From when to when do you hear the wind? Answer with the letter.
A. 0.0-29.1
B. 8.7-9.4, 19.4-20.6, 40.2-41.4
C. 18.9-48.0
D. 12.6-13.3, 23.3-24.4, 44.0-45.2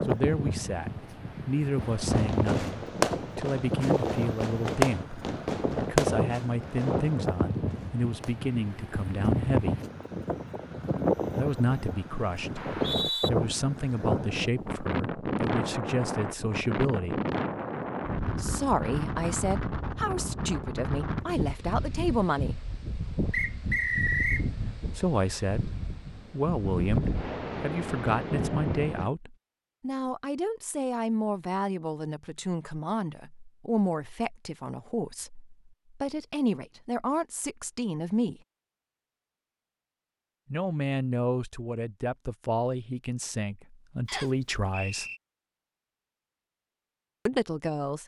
A.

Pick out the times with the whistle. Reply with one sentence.
The whistle can be heard from 12.6 to 13.3 s, from 23.3 to 24.4 s and from 44.0 to 45.2 s.